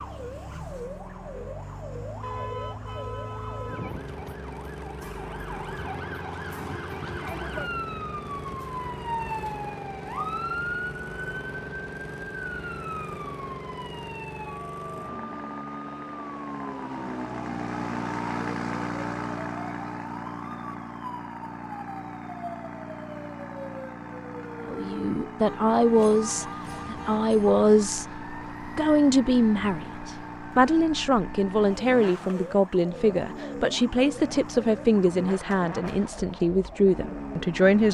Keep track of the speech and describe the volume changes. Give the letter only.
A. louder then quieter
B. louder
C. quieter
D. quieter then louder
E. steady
E.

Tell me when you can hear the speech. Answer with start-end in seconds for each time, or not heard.
24.6-28.1, 28.8-37.8.